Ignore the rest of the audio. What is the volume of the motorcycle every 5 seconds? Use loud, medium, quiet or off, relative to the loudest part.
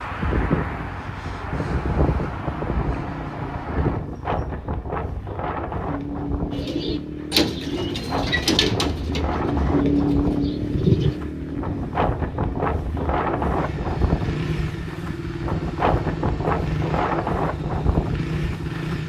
medium, loud, loud, loud.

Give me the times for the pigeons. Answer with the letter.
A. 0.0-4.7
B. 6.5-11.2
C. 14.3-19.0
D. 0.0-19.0
B.